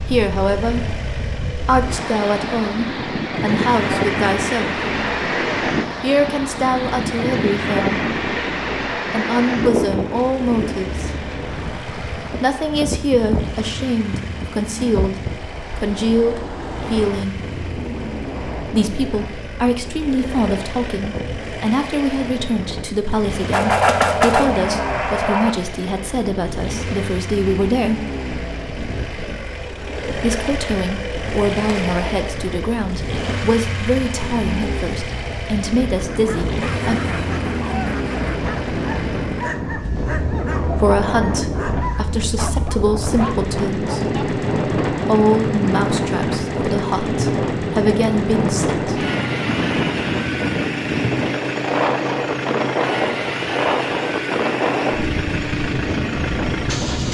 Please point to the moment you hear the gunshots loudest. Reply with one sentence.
The volume of the gunshots peaks at 24 seconds.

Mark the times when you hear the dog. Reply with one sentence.
You can hear the dog from 36.0 to 44.2 s.